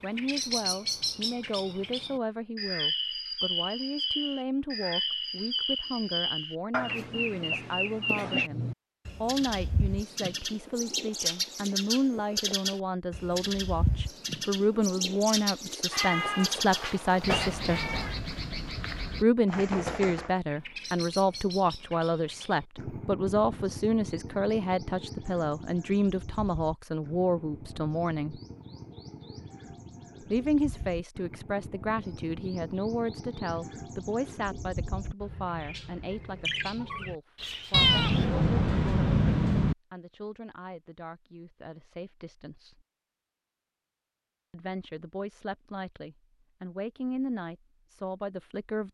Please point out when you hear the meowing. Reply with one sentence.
The meowing can be heard from 15.9 to 18.2 s and from 37.7 to 39.8 s.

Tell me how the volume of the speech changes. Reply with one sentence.
The volume of the speech goes up, then down.